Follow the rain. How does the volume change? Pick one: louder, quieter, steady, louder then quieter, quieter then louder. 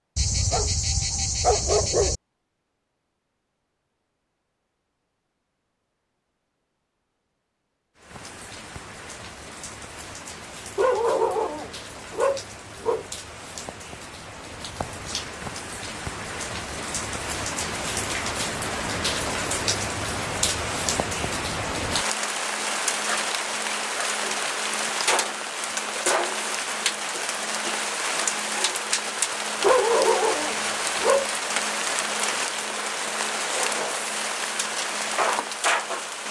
louder.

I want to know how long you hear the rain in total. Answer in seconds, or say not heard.
28 s.